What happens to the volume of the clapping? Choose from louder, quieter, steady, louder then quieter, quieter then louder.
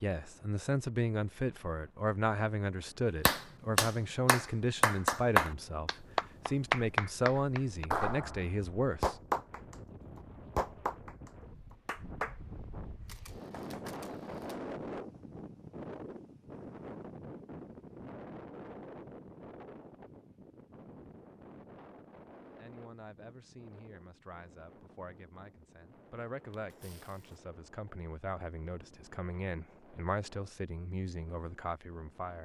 quieter.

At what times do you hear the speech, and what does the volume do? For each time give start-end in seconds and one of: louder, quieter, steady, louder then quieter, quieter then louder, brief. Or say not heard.
0.0-9.2 steady
22.6-32.3 louder.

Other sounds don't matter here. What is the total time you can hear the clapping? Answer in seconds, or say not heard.
11 s.